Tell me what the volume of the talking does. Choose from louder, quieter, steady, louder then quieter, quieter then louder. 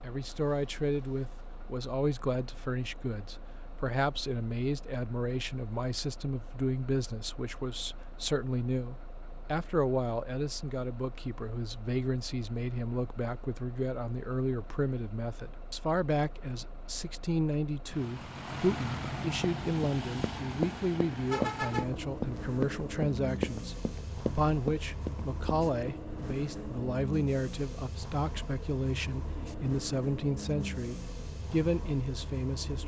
steady.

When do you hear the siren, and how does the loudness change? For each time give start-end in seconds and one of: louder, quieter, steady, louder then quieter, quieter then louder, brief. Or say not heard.
not heard.